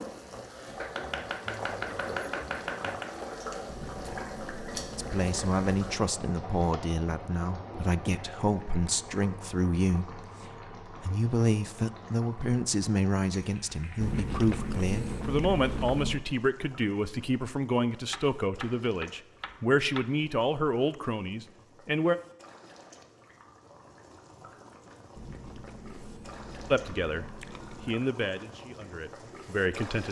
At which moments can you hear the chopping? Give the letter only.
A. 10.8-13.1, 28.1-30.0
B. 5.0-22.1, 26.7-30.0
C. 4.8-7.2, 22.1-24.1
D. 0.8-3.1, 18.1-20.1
D.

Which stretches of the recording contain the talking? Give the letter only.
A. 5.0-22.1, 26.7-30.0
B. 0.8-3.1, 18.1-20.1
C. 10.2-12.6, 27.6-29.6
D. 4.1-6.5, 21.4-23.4
A.